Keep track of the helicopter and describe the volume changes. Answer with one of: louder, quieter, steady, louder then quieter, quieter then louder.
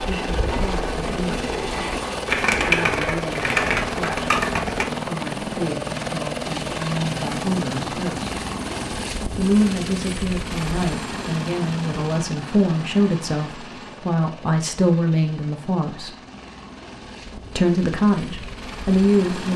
quieter.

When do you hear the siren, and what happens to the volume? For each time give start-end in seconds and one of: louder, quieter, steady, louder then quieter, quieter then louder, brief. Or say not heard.
not heard.